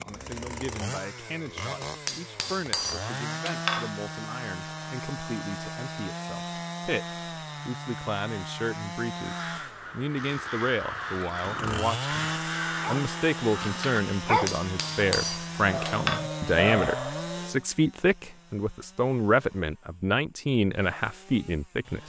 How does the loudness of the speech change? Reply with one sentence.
The volume of the speech goes up.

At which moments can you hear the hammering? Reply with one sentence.
You can hear the hammering from 2.0 to 3.9 s and from 14.4 to 16.2 s.